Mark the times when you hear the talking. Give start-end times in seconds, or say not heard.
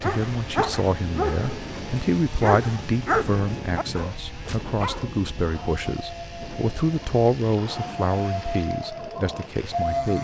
0.0-10.1.